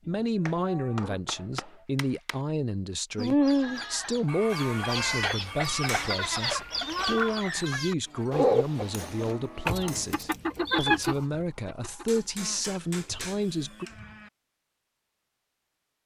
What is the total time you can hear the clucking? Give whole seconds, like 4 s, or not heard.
11 s.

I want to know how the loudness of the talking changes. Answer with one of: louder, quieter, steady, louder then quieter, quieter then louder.
steady.